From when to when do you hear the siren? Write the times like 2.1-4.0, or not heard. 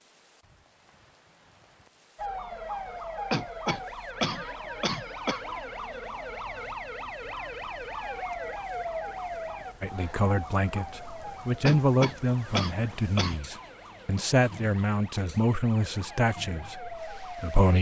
2.1-17.7.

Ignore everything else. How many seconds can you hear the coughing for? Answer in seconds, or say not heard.
4 s.